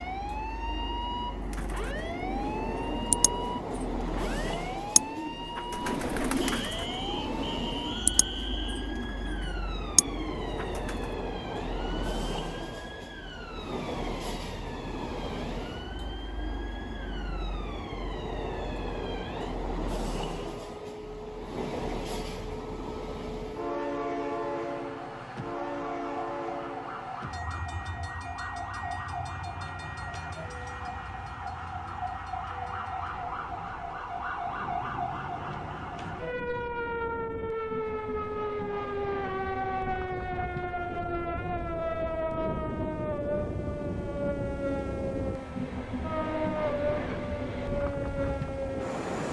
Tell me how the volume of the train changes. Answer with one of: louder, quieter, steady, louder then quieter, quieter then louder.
quieter then louder.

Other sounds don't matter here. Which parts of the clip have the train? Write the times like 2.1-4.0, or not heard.
0.0-49.2.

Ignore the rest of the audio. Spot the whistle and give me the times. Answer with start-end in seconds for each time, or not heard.
6.4-8.9.